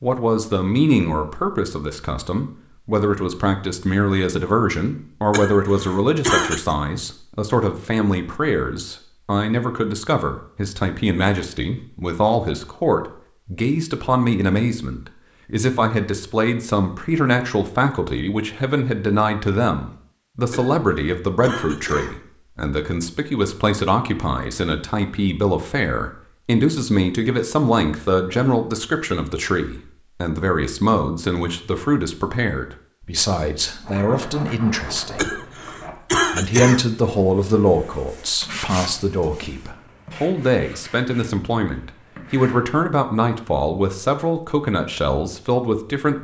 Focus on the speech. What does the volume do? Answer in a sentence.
The loudness of the speech stays about the same.